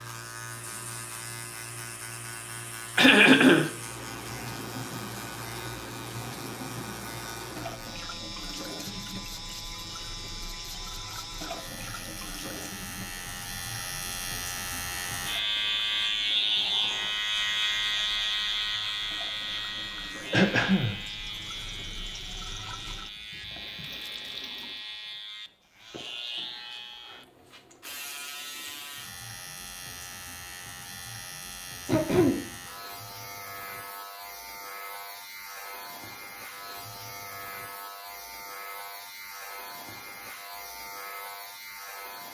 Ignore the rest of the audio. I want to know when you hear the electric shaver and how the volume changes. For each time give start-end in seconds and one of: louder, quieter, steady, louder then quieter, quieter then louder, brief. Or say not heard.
0.0-42.3 louder then quieter.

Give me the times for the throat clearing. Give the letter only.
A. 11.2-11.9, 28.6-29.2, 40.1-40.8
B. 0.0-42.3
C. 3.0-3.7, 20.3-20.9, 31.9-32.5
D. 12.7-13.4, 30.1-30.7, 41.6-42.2
C.